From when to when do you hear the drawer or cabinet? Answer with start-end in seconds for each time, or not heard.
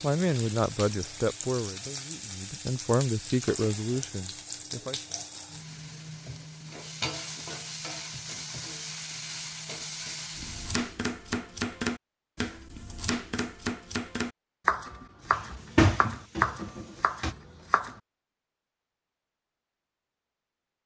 15.3-17.4.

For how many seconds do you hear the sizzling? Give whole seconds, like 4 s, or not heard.
11 s.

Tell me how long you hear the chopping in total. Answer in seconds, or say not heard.
8 s.